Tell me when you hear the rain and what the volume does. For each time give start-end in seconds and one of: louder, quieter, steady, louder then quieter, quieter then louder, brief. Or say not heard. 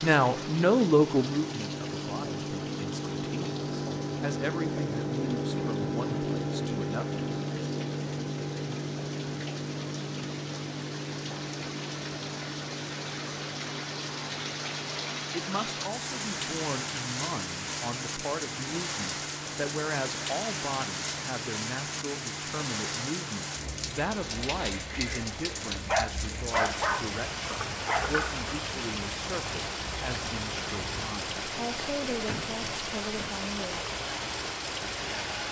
0.0-35.4 louder.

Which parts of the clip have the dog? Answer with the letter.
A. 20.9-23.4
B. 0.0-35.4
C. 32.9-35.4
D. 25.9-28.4
D.